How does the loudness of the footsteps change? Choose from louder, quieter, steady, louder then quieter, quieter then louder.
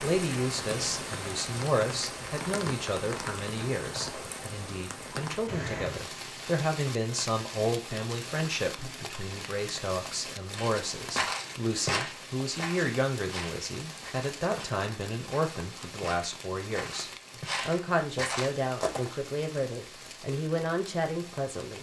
quieter then louder.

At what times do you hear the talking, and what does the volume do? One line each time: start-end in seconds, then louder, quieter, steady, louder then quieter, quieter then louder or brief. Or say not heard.
0.0-21.7 steady.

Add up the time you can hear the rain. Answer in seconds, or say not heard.
22 s.